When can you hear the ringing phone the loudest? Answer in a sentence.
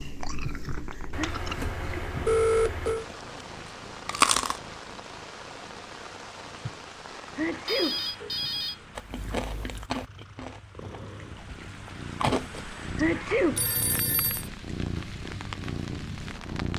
The volume of the ringing phone peaks at 2 seconds.